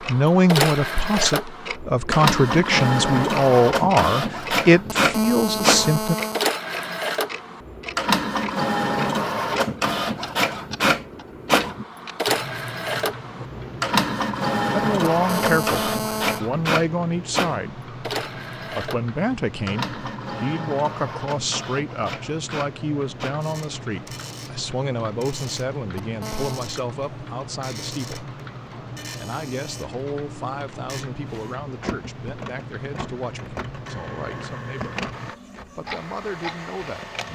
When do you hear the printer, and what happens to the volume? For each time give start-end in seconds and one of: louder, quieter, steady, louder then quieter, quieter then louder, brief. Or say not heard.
0.0-37.3 quieter.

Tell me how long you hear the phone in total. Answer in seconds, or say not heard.
4 s.